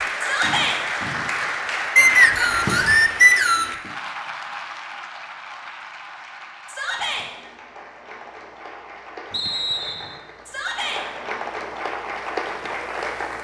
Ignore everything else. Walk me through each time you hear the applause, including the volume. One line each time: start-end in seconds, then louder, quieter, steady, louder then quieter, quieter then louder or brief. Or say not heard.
0.0-13.4 quieter then louder.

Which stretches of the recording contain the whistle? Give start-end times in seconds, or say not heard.
1.9-3.8, 9.3-10.2.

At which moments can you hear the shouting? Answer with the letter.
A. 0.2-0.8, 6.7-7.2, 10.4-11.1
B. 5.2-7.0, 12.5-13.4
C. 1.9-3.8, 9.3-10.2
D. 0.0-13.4
A.